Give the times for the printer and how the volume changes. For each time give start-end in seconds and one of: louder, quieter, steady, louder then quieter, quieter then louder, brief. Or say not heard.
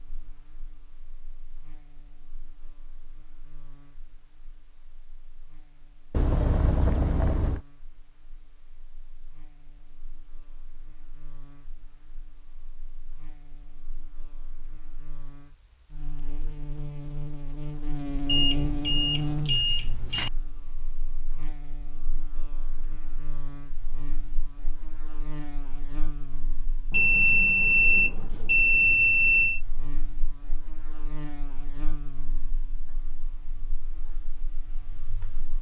not heard.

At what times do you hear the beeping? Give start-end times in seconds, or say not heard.
6.1-7.6, 18.2-20.3, 26.9-29.6.